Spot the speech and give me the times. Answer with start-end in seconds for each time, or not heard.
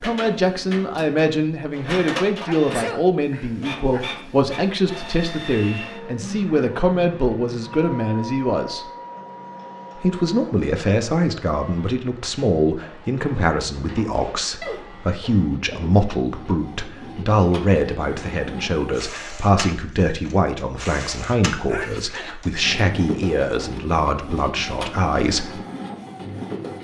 0.0-8.9, 9.9-25.6.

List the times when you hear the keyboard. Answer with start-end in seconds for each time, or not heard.
not heard.